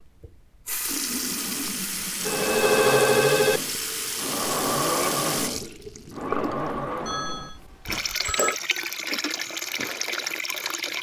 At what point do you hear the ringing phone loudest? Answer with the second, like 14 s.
3 s.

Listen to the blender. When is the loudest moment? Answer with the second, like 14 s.
5 s.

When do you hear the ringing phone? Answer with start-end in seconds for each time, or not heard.
2.2-3.6, 7.0-8.6.